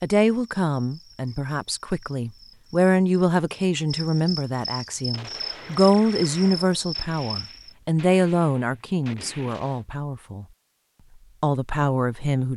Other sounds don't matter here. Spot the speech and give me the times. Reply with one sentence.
You can hear the speech from 0.0 to 10.4 s and from 11.4 to 12.5 s.